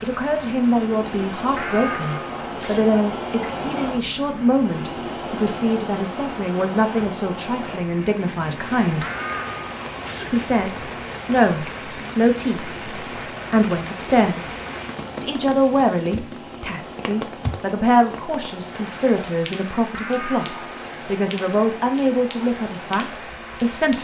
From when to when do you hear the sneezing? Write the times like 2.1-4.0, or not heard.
1.6-2.9, 9.0-10.3, 19.9-20.6.